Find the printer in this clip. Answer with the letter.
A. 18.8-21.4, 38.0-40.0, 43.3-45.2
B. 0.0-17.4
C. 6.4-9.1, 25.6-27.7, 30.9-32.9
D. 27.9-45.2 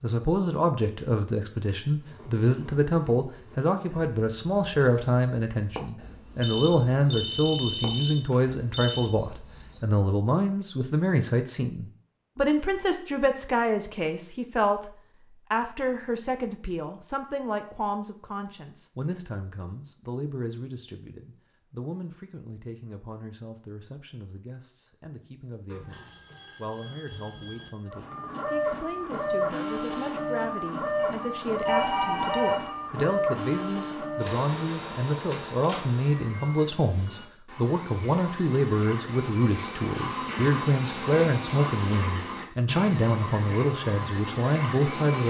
D.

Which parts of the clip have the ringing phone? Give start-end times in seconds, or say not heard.
6.4-9.1, 25.6-27.7, 30.9-32.9.